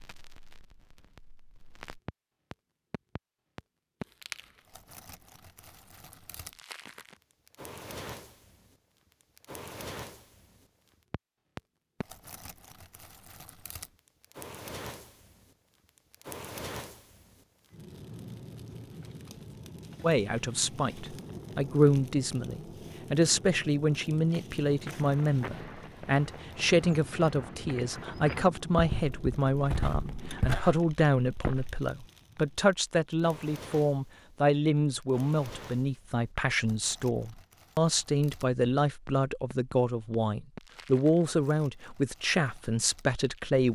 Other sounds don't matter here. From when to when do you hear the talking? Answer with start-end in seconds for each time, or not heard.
20.0-43.6.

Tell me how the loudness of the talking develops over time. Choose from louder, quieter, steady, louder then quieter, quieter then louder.
steady.